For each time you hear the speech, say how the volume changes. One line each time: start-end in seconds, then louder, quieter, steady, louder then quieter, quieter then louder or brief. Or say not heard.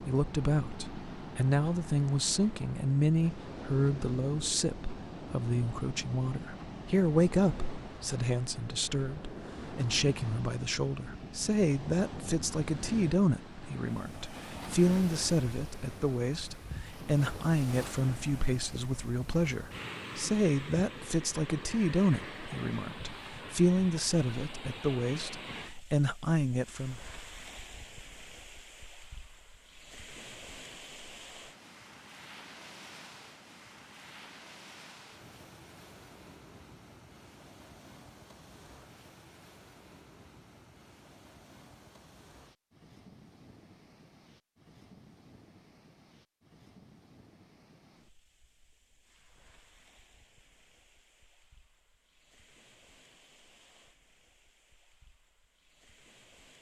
0.1-27.0 steady.